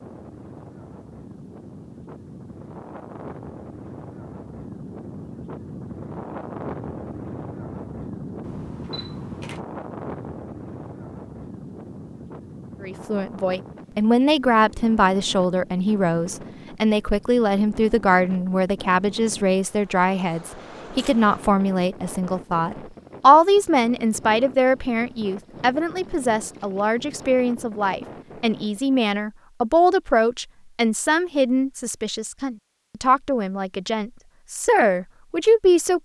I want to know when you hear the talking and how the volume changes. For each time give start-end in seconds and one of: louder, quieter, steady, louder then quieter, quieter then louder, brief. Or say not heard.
12.8-36.0 steady.